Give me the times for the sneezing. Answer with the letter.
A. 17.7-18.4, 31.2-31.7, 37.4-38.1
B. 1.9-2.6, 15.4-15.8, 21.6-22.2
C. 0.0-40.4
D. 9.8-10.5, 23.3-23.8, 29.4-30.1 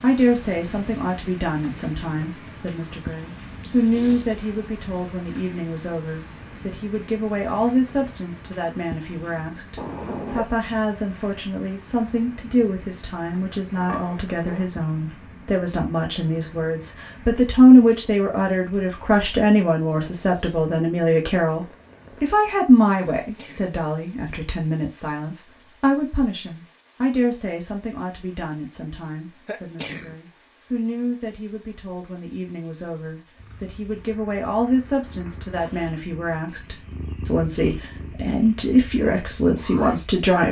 D.